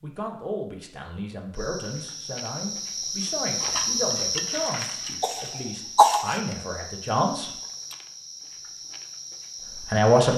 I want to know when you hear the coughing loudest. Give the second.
6 s.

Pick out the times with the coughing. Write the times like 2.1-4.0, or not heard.
4.5-6.4.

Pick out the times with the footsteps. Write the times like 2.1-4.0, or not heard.
not heard.